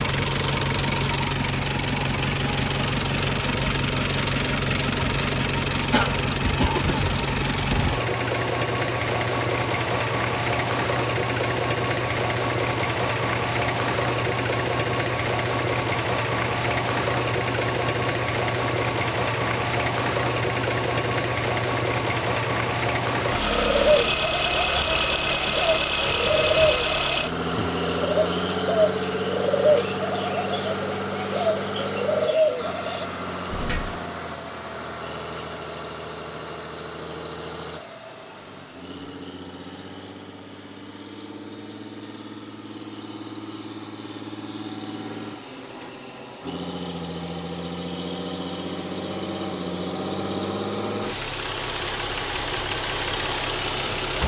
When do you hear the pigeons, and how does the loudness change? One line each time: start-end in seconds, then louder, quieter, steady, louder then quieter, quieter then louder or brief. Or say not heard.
23.4-34.0 steady.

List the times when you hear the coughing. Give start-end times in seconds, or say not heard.
5.9-7.0.